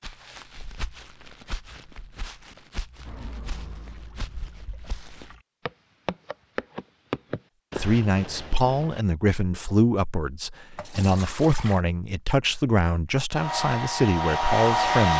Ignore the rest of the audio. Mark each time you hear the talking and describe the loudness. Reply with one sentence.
You can hear the talking from 7.8 to 15.1 s, at a steady volume.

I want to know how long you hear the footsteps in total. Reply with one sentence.
The footsteps can be heard for 9 seconds in total.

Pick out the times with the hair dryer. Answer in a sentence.
The hair dryer can be heard from 13.3 to 15.1 s.